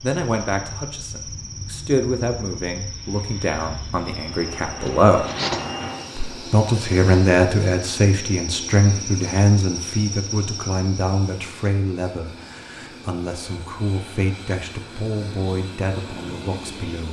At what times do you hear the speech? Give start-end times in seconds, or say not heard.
0.0-5.2, 6.2-17.0.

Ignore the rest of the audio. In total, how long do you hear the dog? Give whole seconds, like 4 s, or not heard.
not heard.